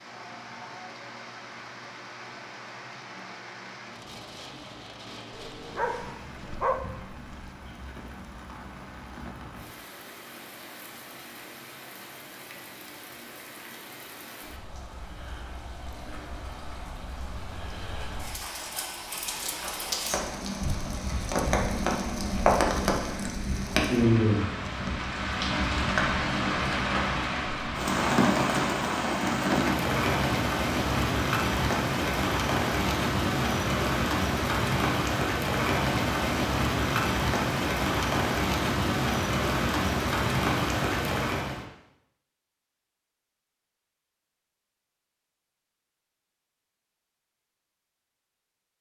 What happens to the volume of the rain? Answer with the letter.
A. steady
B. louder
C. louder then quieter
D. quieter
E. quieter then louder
B.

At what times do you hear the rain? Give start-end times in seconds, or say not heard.
0.0-41.6.